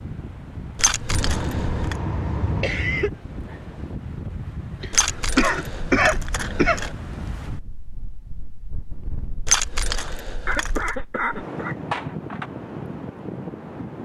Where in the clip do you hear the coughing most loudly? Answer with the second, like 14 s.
6 s.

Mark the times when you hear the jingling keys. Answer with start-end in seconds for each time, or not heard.
0.8-1.9, 4.9-7.0, 9.4-10.9.